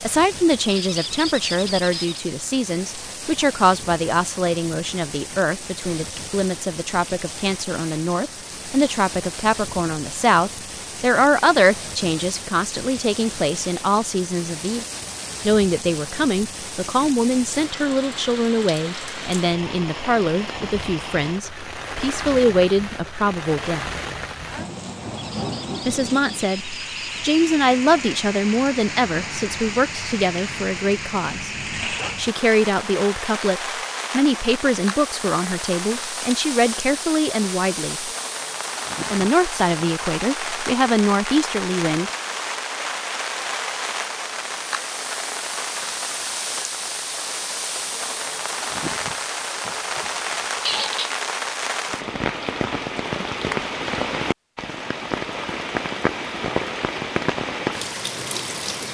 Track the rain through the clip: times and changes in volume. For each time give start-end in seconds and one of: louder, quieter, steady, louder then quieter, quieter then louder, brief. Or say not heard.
0.0-58.8 louder.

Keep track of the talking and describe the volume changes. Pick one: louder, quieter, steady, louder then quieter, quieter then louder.
steady.